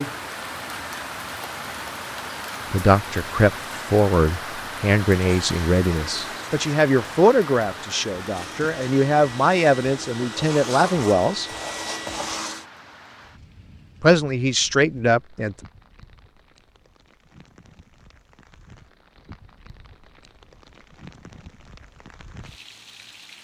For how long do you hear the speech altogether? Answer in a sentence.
You can hear the speech for 10 seconds altogether.